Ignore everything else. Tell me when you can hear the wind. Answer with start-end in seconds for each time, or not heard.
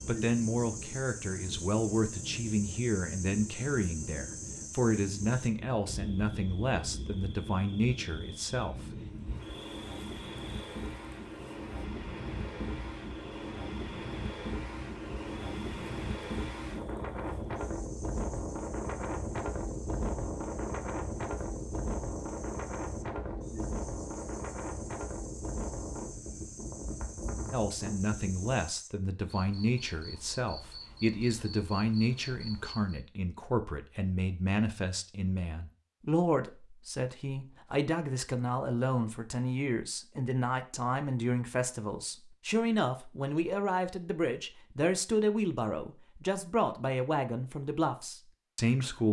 0.0-28.5.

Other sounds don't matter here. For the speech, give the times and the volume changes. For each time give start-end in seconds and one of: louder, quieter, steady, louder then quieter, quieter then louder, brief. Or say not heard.
0.1-8.8 steady
27.5-49.0 steady.